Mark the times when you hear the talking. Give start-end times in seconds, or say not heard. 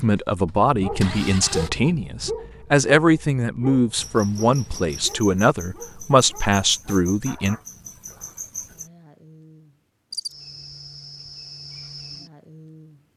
0.0-7.5.